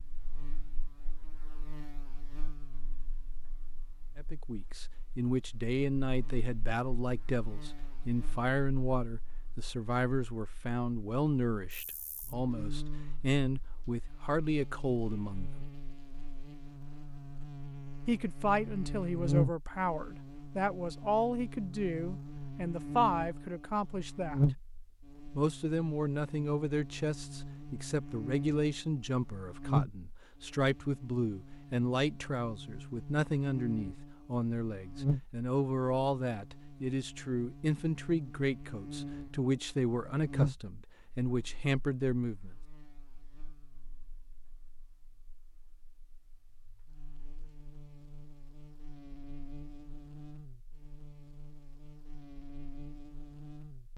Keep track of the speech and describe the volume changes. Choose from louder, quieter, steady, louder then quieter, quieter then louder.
steady.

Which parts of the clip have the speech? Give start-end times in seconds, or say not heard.
4.2-15.7, 18.1-24.4, 25.4-42.5.